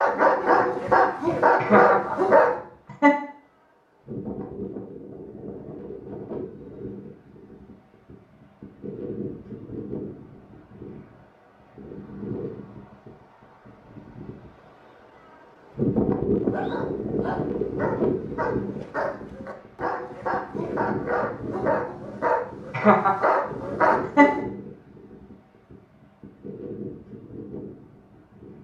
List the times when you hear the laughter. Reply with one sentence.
You can hear the laughter from 1.6 to 3.1 s and from 22.7 to 24.4 s.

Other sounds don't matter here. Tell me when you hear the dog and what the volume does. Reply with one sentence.
You can hear the dog briefly from 0.0 to 2.6 s; and from 16.5 to 24.4 s, getting louder.